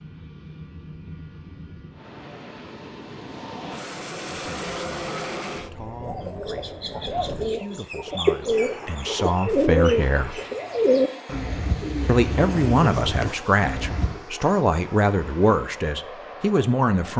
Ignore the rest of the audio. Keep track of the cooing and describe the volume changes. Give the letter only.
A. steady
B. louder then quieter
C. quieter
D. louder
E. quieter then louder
B.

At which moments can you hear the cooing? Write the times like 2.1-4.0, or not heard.
5.7-14.2.